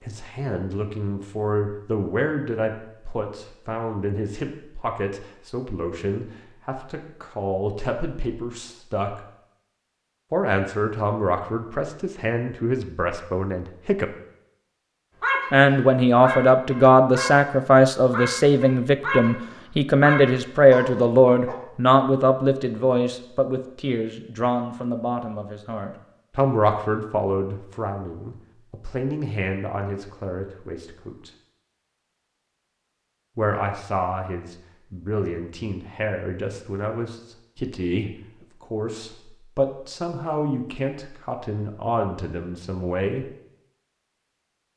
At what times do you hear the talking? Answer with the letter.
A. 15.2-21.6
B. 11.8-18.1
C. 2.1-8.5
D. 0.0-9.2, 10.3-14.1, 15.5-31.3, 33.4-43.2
D.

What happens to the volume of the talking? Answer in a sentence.
The volume of the talking goes up, then down.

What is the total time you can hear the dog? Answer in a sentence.
You can hear the dog for 6 seconds altogether.